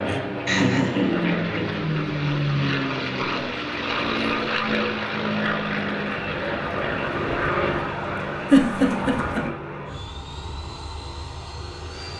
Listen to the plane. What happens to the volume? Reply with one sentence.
The volume of the plane goes down.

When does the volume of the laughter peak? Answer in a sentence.
The loudest moment of the laughter is at 9 seconds.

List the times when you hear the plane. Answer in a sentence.
You can hear the plane from 0.0 to 12.1 s.